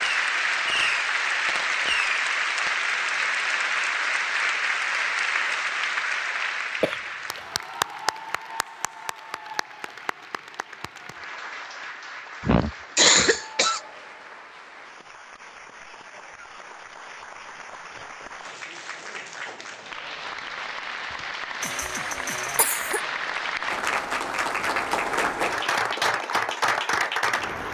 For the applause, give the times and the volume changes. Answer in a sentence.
You can hear the applause from 0.0 to 27.6 s, getting quieter then louder.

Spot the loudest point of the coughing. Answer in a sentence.
The volume of the coughing peaks at 13 seconds.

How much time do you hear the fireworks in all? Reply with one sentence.
The fireworks can be heard for 3 seconds in total.